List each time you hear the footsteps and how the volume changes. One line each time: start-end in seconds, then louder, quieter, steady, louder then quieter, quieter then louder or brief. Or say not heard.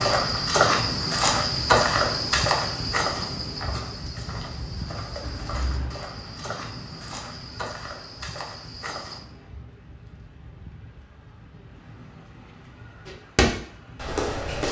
0.0-9.2 quieter
13.1-14.6 brief.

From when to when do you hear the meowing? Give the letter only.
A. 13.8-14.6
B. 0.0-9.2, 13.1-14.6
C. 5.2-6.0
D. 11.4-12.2
C.